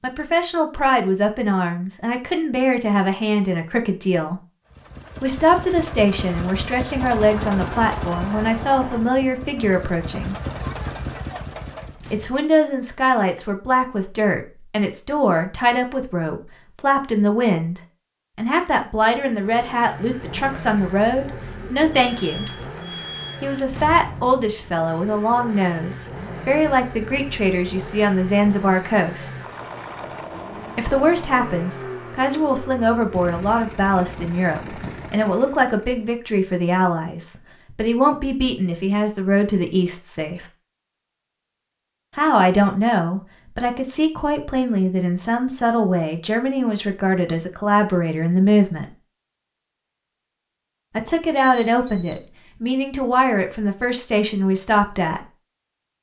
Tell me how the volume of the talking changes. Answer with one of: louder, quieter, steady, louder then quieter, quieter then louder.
steady.